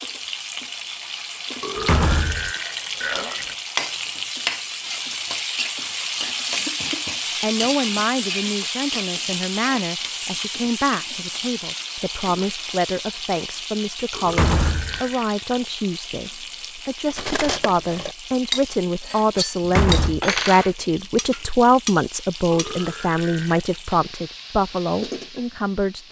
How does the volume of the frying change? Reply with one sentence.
The volume of the frying goes down.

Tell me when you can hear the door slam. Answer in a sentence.
The door slam can be heard from 1.8 to 2.5 s, from 14.2 to 15.0 s and from 19.6 to 20.2 s.